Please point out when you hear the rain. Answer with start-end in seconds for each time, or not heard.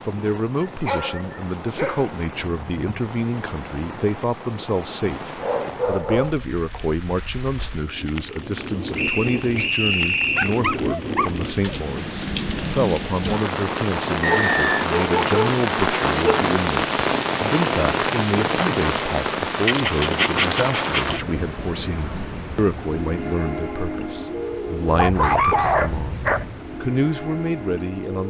0.0-28.2.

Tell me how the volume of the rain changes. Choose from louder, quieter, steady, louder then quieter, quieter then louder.
louder then quieter.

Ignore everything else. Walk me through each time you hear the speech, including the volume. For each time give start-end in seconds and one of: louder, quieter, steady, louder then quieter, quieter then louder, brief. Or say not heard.
0.1-28.2 steady.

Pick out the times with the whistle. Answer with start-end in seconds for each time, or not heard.
8.9-10.6, 14.2-14.8.